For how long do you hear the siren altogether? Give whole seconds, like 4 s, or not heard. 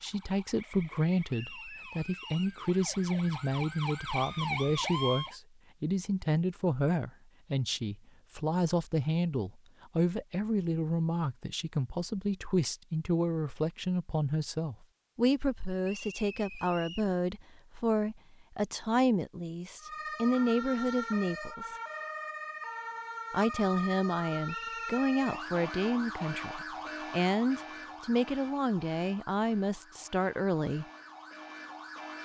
18 s.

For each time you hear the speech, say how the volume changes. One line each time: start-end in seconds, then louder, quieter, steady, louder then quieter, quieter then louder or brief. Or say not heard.
0.0-21.8 steady
23.3-30.9 steady.